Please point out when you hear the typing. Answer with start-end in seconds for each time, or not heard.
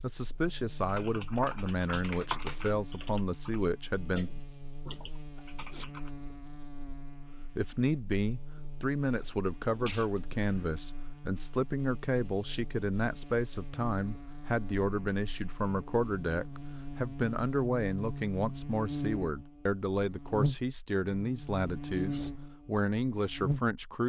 0.8-6.1.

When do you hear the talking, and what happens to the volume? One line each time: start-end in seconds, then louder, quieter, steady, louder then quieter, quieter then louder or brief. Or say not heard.
0.0-4.3 steady
7.5-24.0 steady.